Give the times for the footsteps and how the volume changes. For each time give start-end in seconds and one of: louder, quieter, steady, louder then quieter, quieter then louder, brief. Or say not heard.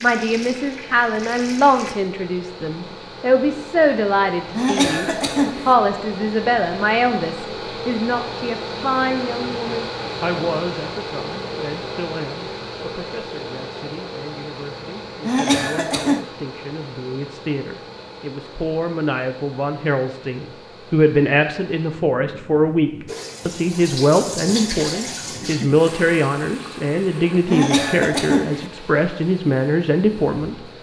not heard.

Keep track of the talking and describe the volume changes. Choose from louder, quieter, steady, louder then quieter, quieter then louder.
quieter then louder.